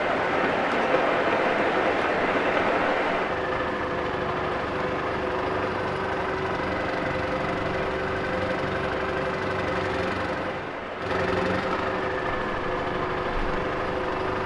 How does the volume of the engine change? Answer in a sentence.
The volume of the engine goes up.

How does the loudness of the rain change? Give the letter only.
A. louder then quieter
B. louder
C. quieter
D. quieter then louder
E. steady
C.